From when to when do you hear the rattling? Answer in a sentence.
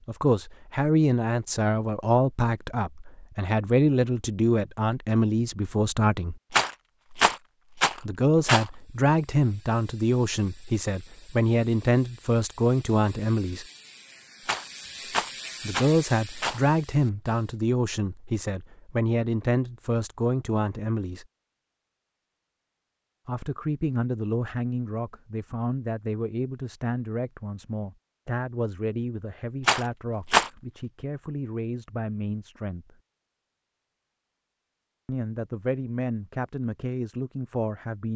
You can hear the rattling from 6.5 to 8.7 s, from 14.4 to 16.6 s and from 29.6 to 30.5 s.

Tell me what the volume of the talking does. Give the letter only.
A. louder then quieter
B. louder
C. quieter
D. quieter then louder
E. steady
C.